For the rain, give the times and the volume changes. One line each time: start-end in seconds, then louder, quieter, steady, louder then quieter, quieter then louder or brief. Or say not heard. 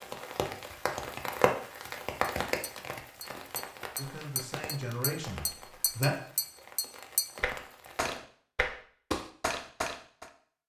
0.0-8.2 quieter.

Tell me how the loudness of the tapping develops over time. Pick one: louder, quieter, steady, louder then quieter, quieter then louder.
louder.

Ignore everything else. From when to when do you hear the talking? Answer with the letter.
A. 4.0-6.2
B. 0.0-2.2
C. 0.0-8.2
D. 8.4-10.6
A.